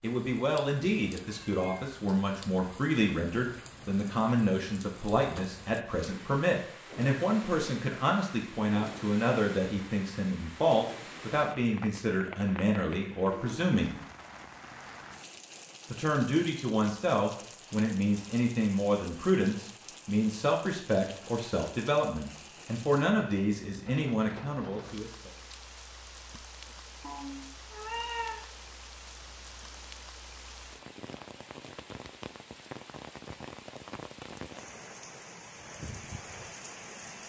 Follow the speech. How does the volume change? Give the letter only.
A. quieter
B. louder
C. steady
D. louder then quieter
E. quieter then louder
C.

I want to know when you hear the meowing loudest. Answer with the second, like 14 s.
28 s.